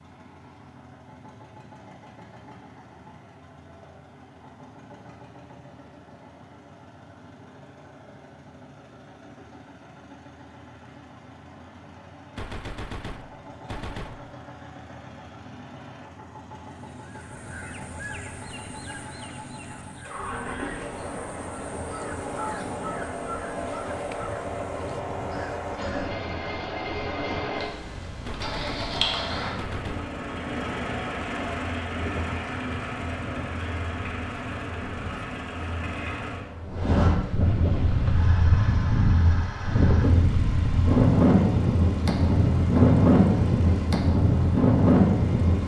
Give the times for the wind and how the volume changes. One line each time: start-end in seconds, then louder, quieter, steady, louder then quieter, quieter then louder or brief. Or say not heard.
20.1-45.6 louder.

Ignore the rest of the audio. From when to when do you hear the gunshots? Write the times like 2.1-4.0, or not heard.
12.3-14.2, 28.2-30.1.